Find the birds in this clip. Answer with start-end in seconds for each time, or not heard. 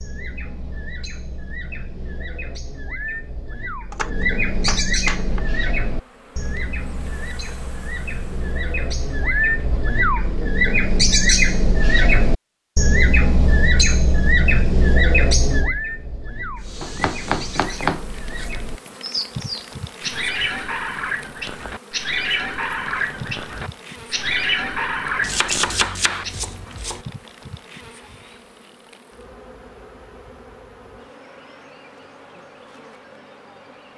0.0-26.4.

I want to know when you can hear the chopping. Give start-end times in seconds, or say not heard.
3.9-5.5, 16.8-18.9, 25.2-27.1.